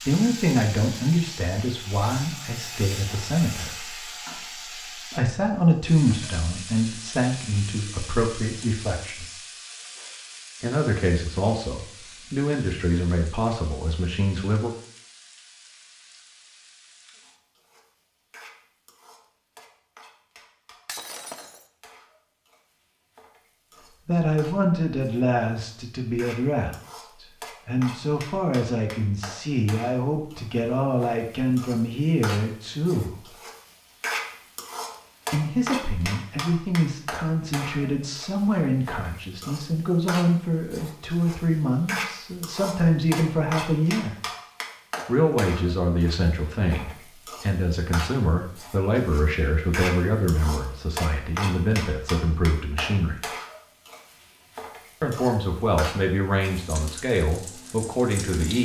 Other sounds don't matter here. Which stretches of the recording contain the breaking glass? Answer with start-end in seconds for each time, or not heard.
20.9-21.6.